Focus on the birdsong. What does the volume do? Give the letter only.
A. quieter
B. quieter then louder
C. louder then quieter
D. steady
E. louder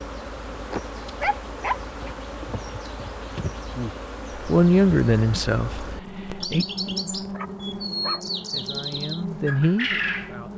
E.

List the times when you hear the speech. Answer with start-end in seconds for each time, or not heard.
4.5-6.7, 8.4-10.5.